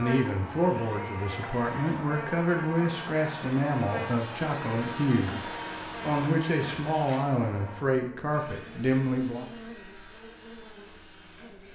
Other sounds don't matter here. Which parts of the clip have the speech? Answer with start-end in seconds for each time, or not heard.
0.0-9.4.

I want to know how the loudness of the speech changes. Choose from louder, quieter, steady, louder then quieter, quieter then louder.
steady.